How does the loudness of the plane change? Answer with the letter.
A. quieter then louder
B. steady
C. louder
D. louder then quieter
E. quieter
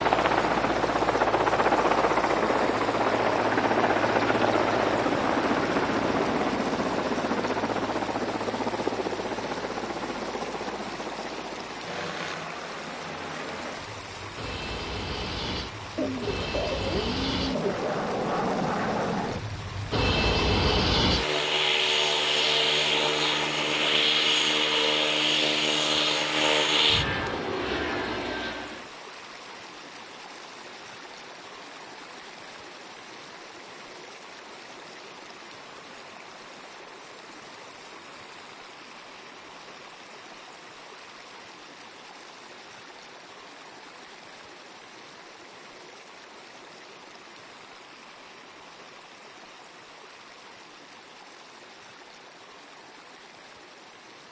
A.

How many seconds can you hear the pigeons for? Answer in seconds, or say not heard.
2 s.